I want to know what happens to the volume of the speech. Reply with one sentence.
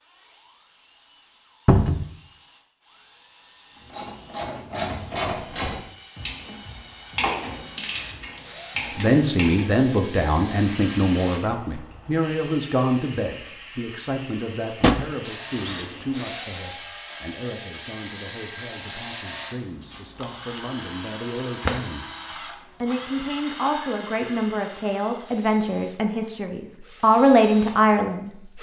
The loudness of the speech goes down, then up.